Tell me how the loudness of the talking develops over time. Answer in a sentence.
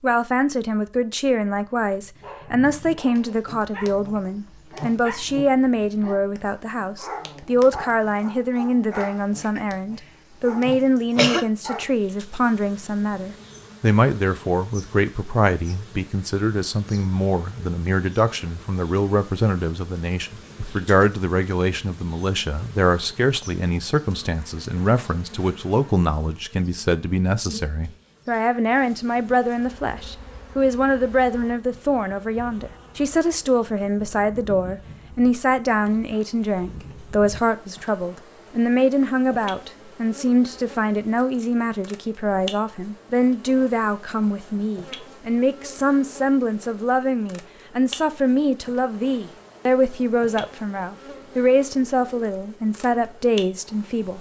The loudness of the talking stays about the same.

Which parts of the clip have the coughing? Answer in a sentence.
You can hear the coughing from 10.7 to 11.4 s.